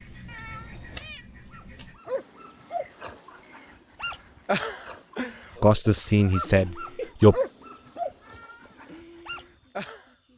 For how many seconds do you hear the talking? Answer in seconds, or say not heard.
2 s.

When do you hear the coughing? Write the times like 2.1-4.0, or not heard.
not heard.